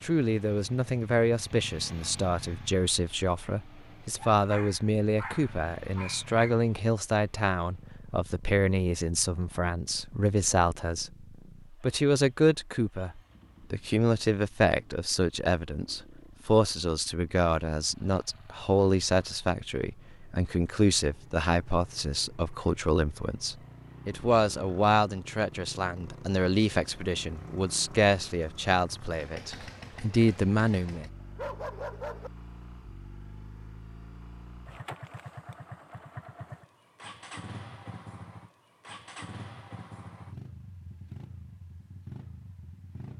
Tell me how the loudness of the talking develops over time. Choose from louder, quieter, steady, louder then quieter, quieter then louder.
steady.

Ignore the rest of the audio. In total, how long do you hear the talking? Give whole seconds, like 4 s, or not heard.
31 s.